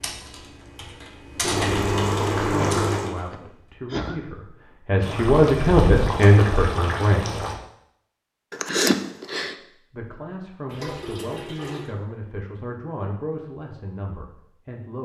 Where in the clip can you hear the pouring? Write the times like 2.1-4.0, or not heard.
1.4-3.1, 5.0-7.5, 10.7-11.9.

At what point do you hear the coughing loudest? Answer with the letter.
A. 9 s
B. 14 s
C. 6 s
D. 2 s
A.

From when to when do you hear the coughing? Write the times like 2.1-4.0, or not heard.
2.5-4.2, 8.5-9.6.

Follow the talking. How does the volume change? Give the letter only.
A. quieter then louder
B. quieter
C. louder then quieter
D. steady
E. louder
C.